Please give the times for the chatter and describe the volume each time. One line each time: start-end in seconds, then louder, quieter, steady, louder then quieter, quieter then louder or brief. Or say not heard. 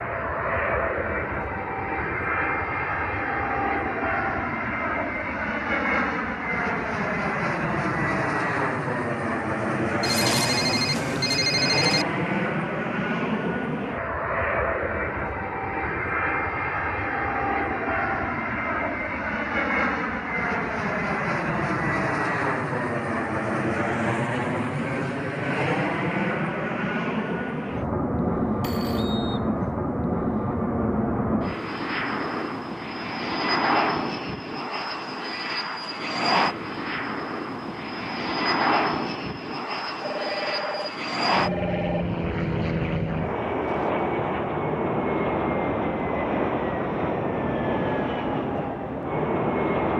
not heard.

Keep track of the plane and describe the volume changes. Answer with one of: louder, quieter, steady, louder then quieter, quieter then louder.
steady.